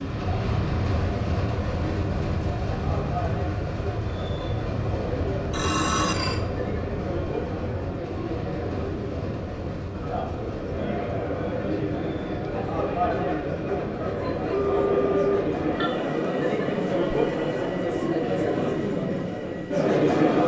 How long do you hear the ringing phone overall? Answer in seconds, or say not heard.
2 s.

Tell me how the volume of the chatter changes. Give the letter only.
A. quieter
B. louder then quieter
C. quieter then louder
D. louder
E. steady
D.